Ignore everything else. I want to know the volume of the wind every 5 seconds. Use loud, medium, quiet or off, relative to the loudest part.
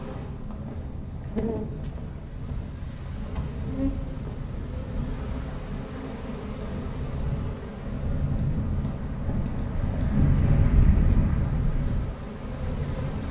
medium, medium, loud.